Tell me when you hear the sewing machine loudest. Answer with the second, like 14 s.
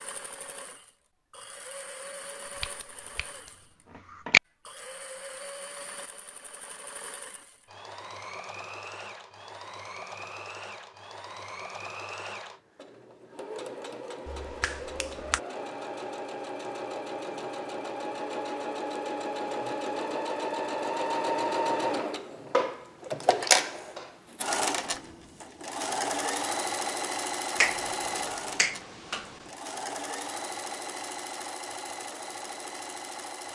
23 s.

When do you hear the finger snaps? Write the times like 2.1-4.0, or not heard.
2.6-4.4, 14.2-15.4, 27.6-29.4.